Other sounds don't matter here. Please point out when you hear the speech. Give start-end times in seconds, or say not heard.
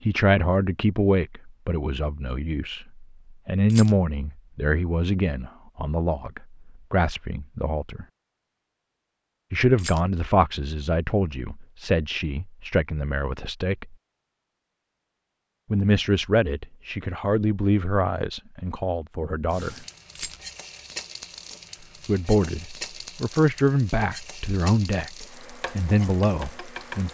0.1-8.1, 9.5-13.9, 15.7-19.8, 22.1-27.1.